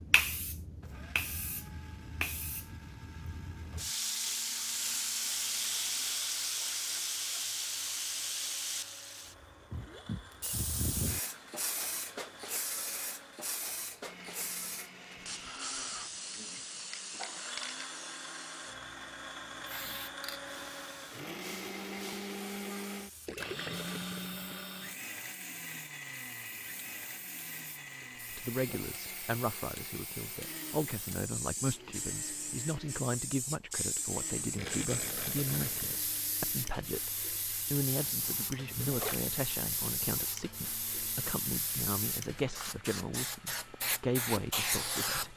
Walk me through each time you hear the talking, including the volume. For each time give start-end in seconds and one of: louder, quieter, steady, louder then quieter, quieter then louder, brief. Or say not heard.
28.3-45.3 steady.